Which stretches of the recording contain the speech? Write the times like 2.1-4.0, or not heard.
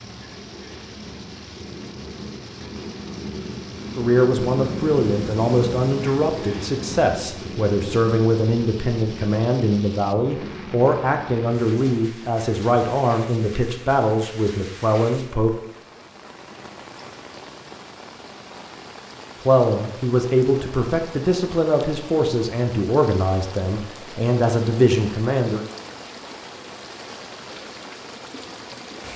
4.0-15.5, 19.4-25.6.